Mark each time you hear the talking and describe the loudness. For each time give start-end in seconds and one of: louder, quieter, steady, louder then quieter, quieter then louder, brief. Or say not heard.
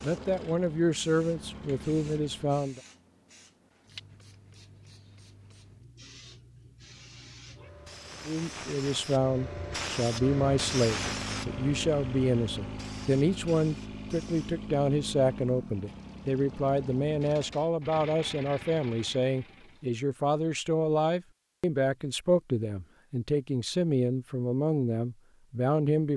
0.0-2.8 brief
8.2-26.1 steady.